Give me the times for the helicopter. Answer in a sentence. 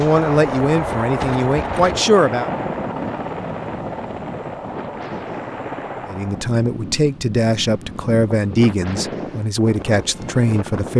You can hear the helicopter from 0.0 to 6.5 s.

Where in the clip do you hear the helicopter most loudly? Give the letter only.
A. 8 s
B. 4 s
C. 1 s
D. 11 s
C.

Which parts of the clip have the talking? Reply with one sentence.
The talking can be heard from 0.0 to 2.5 s and from 6.0 to 10.9 s.